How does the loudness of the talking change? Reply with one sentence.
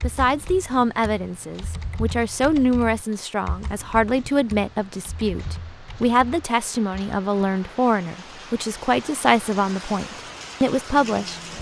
The loudness of the talking stays about the same.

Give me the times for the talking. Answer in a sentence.
You can hear the talking from 0.0 to 11.4 s.